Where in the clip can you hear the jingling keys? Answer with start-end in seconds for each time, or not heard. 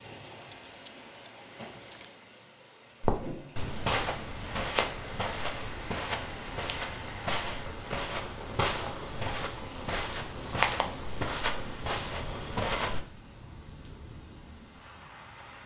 0.2-2.1.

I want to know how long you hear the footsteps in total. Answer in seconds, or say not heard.
10 s.